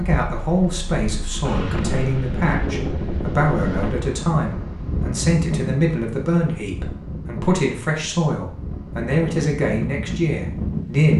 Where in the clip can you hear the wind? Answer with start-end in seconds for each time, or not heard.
0.2-11.1.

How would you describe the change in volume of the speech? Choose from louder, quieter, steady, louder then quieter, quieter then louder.
steady.